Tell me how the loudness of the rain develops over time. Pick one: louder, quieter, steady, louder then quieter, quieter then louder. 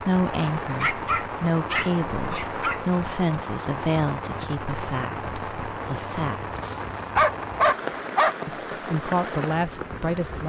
steady.